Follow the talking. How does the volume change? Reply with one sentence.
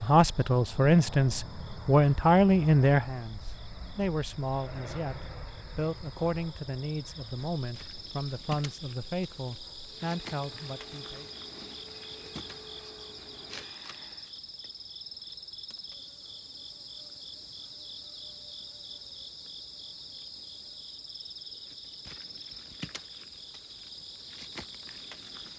The loudness of the talking goes down.